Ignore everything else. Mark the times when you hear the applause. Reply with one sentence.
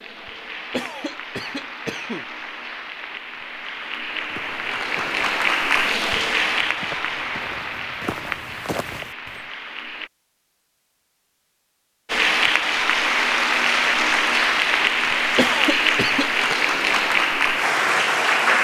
The applause can be heard from 0.0 to 10.1 s and from 12.1 to 18.5 s.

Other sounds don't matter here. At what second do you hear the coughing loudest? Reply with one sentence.
The loudest moment of the coughing is at 16 seconds.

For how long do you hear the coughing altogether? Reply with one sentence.
You can hear the coughing for 3 seconds altogether.